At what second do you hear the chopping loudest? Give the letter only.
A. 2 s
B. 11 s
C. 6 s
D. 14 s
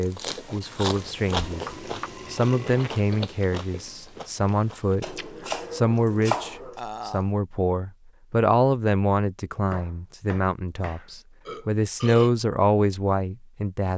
C.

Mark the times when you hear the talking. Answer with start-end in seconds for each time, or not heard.
0.0-1.6, 2.3-13.9.